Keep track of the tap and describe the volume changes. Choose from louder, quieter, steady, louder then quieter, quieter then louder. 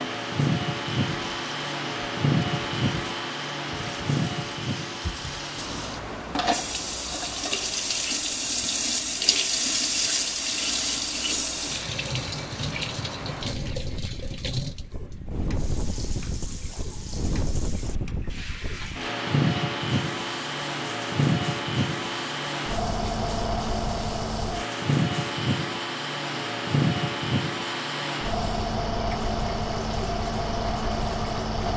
louder then quieter.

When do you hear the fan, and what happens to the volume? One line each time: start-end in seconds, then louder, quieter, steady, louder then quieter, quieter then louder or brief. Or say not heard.
0.0-31.7 quieter then louder.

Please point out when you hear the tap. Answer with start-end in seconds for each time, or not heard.
0.0-31.6.